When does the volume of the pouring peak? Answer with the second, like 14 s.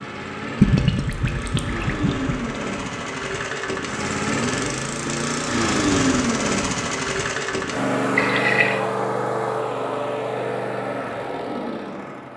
1 s.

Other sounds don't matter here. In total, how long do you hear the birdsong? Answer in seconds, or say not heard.
not heard.